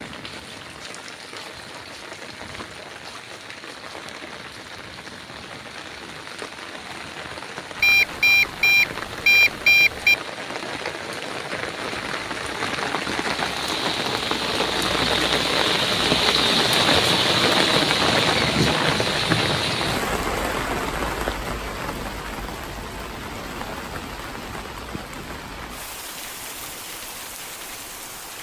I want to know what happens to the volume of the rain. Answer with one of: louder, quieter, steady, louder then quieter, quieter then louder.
louder then quieter.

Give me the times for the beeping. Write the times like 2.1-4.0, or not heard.
7.8-10.2.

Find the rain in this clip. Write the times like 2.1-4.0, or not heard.
0.0-28.3.